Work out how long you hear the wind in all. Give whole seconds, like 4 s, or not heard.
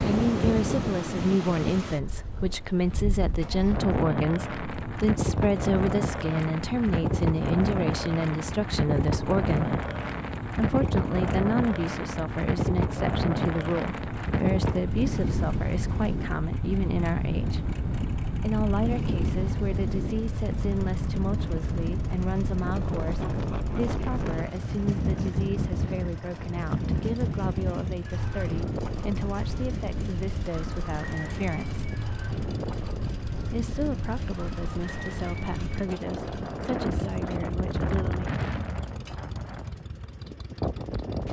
41 s.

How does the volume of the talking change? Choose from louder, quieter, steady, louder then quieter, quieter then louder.
quieter.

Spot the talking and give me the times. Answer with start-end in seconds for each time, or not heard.
0.1-9.8, 10.6-17.6, 18.4-31.8, 33.5-38.4.